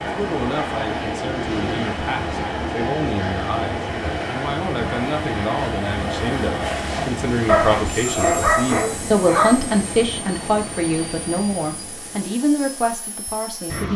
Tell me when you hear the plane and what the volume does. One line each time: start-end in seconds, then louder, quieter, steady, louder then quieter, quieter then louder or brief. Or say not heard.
0.0-13.9 quieter.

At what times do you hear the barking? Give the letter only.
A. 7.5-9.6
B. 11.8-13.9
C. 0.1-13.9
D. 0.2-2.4
A.